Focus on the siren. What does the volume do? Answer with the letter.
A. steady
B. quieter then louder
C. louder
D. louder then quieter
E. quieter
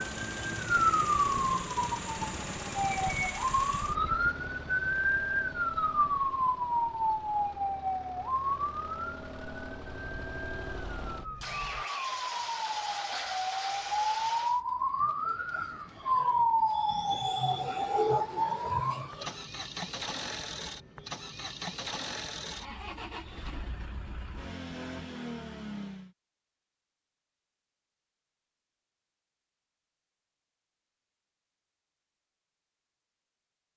B.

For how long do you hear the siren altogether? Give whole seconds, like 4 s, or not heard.
19 s.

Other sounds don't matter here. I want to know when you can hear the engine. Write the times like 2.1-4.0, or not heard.
0.0-14.6, 19.0-26.1.